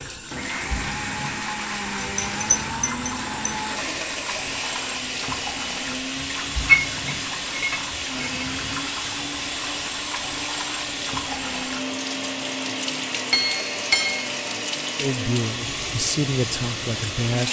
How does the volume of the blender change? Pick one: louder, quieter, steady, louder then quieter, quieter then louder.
steady.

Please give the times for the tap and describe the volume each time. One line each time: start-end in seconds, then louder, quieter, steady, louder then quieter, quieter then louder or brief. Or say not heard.
0.0-17.4 steady.